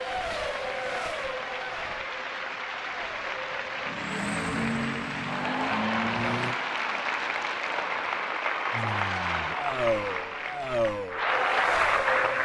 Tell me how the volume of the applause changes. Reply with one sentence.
The loudness of the applause goes up.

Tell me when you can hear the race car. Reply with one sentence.
You can hear the race car from 0.0 to 6.5 s and from 8.7 to 12.3 s.